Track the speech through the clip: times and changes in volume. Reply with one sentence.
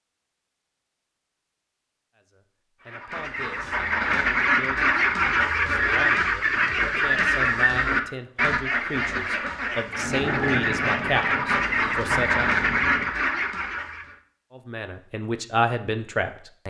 The speech can be heard from 2.1 to 12.6 s, getting louder; and briefly from 14.5 to 16.6 s.